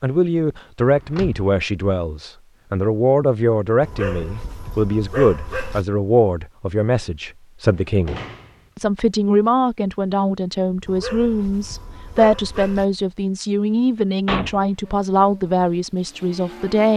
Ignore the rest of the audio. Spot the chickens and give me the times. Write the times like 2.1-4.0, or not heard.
not heard.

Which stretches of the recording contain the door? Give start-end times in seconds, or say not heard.
0.8-1.4, 7.8-8.6, 14.2-14.7.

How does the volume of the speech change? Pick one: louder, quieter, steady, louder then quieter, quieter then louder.
steady.